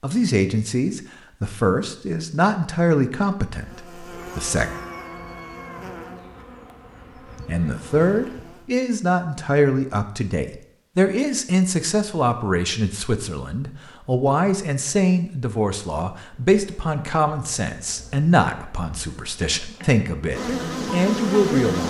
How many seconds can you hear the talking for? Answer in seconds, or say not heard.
19 s.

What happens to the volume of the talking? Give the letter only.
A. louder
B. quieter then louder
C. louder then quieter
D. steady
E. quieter
D.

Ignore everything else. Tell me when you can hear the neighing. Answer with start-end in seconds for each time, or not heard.
not heard.